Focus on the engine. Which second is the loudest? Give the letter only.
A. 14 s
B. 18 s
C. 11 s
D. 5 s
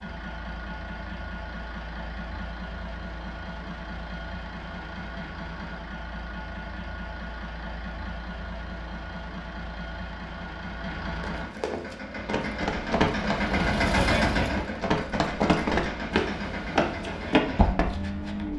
A.